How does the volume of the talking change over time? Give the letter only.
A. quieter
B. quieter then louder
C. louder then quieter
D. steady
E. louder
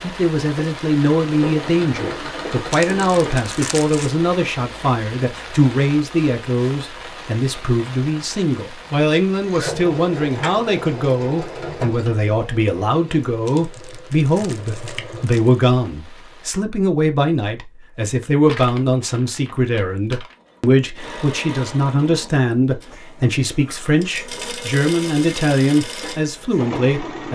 D.